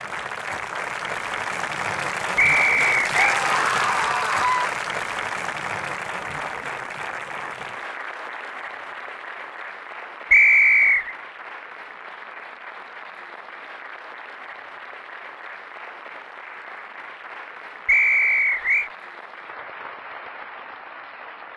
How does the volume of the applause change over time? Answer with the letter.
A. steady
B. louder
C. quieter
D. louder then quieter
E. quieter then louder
C.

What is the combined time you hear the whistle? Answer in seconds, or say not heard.
3 s.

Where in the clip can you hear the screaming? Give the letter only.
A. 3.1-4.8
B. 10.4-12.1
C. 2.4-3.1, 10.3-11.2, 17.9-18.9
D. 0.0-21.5
A.